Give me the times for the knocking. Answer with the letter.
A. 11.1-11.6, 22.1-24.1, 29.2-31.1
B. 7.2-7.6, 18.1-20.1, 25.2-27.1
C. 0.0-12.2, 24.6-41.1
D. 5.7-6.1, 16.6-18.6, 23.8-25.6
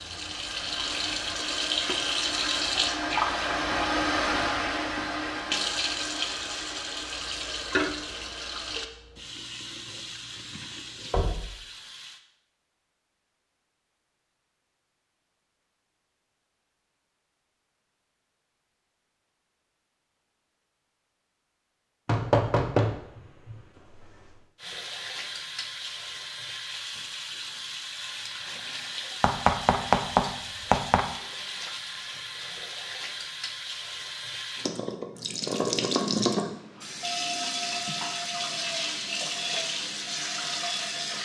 A.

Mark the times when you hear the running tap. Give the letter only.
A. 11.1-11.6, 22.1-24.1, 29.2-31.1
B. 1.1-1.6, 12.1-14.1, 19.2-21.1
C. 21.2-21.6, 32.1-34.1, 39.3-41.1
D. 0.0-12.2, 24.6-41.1
D.